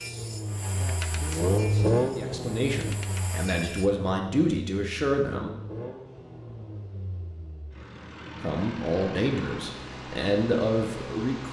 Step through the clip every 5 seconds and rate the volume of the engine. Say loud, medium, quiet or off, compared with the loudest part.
loud, medium, medium.